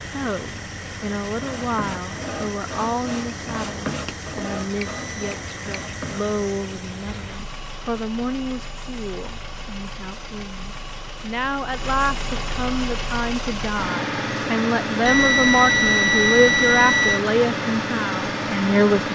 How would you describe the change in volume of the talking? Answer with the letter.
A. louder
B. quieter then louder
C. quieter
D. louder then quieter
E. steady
A.